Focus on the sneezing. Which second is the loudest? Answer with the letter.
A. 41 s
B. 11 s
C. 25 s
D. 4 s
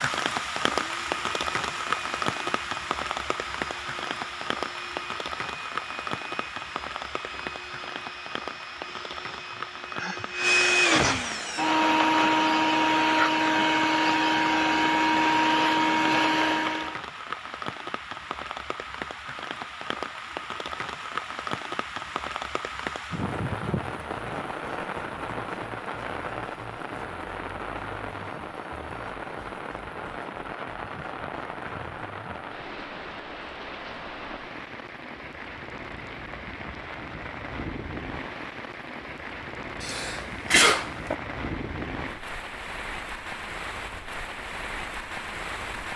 A.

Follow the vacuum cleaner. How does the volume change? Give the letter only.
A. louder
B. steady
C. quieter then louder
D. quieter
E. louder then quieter
A.